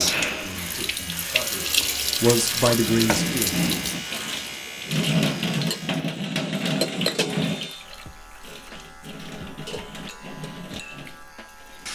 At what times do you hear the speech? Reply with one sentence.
You can hear the speech from 0.0 to 3.5 s.